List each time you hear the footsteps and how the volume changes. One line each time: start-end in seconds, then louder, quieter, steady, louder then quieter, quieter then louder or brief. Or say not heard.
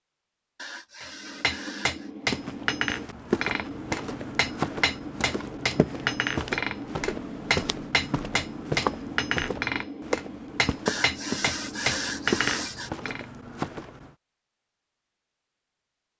2.2-14.2 steady.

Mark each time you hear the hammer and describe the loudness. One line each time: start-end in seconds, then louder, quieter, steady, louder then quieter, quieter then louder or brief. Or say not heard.
1.0-13.2 steady.